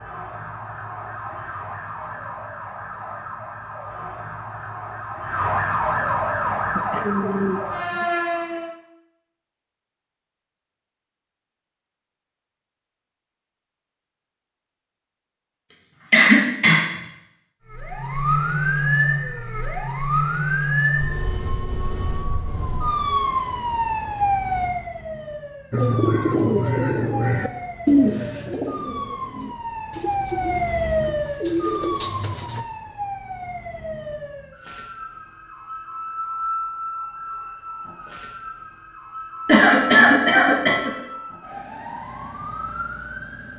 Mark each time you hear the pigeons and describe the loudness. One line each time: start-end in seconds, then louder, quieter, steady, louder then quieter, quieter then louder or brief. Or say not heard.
6.4-8.1 brief
25.7-32.6 quieter then louder.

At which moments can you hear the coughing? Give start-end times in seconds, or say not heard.
16.1-16.8, 39.5-40.9.